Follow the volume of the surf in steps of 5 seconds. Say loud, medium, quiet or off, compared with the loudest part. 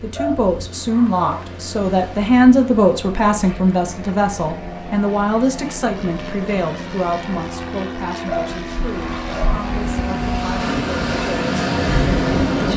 quiet, quiet, loud.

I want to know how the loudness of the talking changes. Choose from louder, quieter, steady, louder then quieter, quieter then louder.
quieter.